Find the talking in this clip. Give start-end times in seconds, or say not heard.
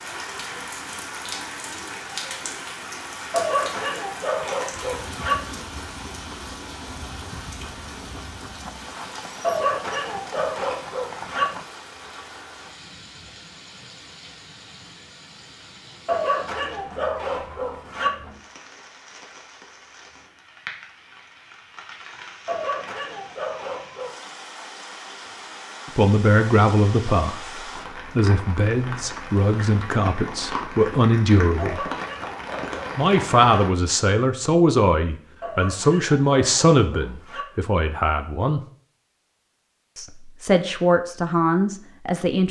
25.9-31.9, 33.0-38.6, 40.0-42.4.